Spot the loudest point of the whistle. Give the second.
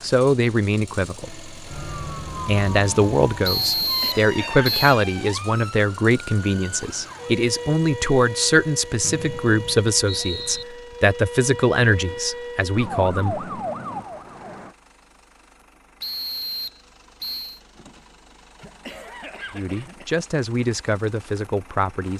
4 s.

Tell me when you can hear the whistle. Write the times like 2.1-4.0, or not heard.
3.5-5.0, 9.0-10.7, 16.0-17.6.